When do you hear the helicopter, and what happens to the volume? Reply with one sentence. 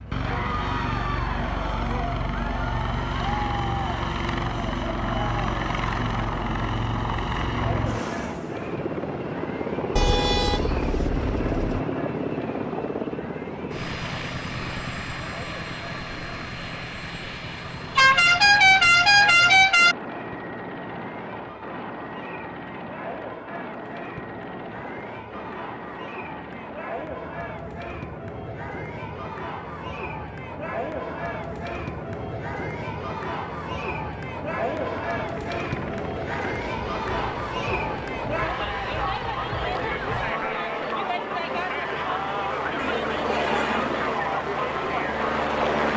You can hear the helicopter from 0.0 to 45.9 s, getting quieter then louder.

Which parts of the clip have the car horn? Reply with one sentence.
The car horn can be heard from 9.9 to 11.8 s, from 17.9 to 19.9 s and from 42.8 to 43.9 s.